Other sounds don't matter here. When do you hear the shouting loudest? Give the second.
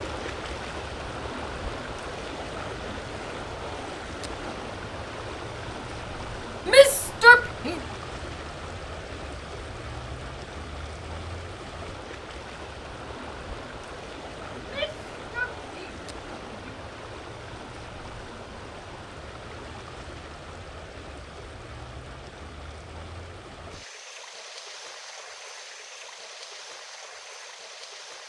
7 s.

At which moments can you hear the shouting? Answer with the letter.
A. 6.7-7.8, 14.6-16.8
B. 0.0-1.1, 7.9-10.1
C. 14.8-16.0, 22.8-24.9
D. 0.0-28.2
A.